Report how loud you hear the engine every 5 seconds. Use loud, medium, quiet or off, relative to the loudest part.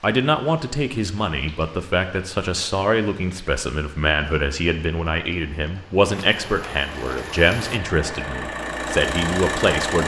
off, loud.